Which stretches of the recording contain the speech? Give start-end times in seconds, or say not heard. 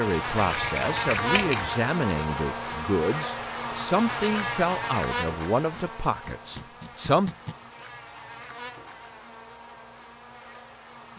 0.0-7.3.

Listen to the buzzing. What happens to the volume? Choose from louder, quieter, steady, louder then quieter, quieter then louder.
quieter.